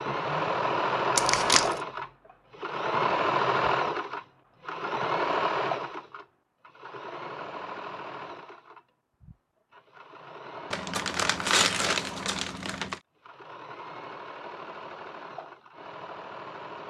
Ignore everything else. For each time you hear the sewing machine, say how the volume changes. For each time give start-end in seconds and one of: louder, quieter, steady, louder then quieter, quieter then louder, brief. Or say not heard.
0.0-16.8 quieter.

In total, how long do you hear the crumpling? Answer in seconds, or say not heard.
3 s.